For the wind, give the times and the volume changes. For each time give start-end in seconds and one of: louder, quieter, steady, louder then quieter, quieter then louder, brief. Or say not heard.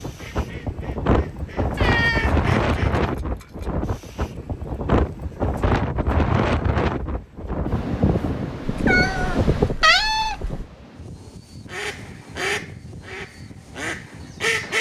0.0-14.7 quieter.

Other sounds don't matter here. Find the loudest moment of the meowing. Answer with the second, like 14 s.
10 s.